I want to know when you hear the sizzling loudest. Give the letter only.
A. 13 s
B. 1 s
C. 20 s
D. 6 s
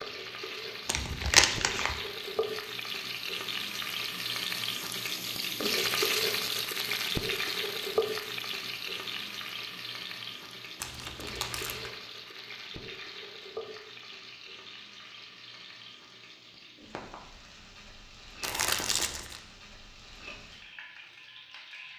D.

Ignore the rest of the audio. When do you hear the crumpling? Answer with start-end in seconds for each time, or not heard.
0.8-2.0, 10.8-11.9, 18.4-19.4.